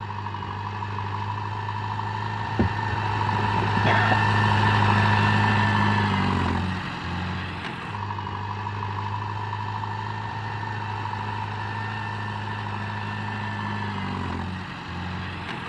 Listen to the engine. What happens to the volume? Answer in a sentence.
The loudness of the engine goes up, then down.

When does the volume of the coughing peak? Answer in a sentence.
The volume of the coughing peaks at 4 seconds.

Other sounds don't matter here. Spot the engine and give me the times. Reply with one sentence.
The engine can be heard from 0.0 to 15.6 s.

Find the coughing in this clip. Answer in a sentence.
You can hear the coughing from 2.5 to 4.2 s.